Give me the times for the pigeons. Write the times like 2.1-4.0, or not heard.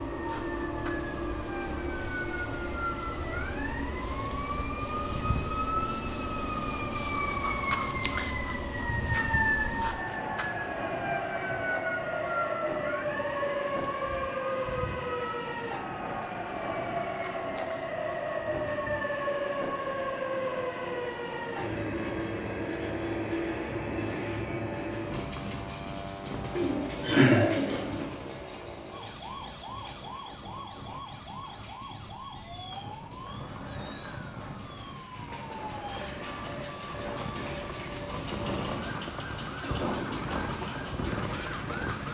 26.6-28.1.